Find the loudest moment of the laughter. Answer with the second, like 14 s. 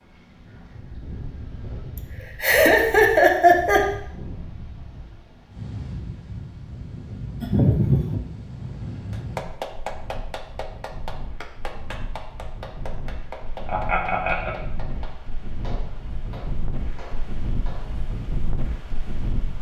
3 s.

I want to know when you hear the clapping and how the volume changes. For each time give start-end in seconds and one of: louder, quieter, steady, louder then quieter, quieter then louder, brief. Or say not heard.
9.1-17.9 quieter.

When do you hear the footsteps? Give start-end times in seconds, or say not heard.
not heard.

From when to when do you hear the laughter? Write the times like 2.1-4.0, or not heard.
1.9-3.9, 7.4-8.2, 13.7-14.6.